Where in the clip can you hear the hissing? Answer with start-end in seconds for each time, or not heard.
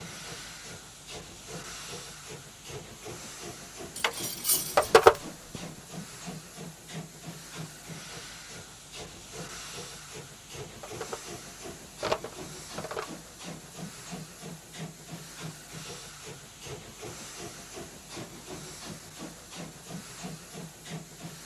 0.0-21.4.